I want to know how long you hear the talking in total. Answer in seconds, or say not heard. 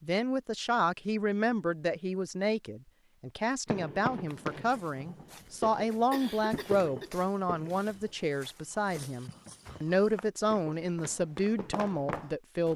13 s.